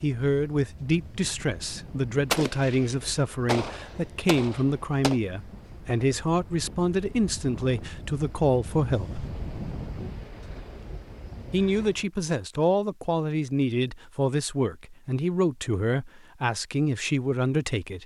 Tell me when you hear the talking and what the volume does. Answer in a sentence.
You can hear the talking from 0.0 to 9.2 s, at a steady volume; and from 11.5 to 18.0 s, at a steady volume.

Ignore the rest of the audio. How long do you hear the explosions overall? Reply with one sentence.
The explosions can be heard for 3 seconds in total.